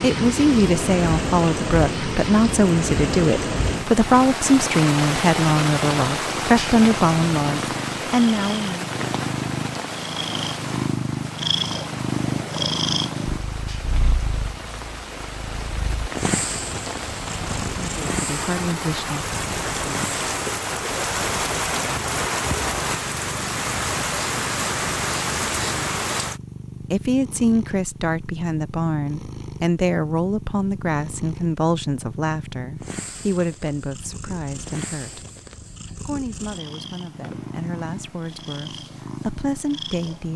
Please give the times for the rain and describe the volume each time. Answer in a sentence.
The rain can be heard from 0.0 to 26.4 s, getting quieter then louder.